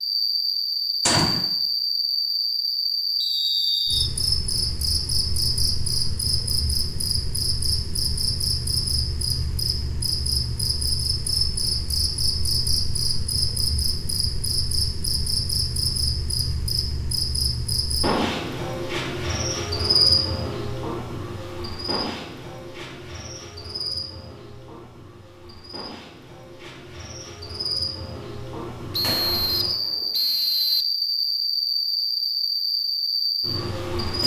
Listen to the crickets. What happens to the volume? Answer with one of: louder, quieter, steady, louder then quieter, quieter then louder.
quieter then louder.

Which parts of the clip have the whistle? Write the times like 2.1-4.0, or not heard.
3.2-4.1, 28.9-30.9.